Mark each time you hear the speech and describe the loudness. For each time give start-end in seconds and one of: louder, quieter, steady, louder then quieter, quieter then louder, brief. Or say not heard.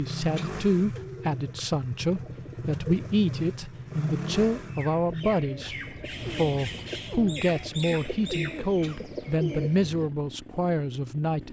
0.0-11.4 steady.